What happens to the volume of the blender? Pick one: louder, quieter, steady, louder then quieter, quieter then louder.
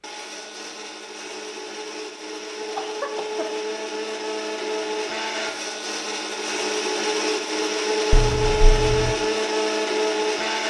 louder.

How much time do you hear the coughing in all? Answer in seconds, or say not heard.
2 s.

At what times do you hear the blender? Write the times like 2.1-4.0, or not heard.
0.0-10.6.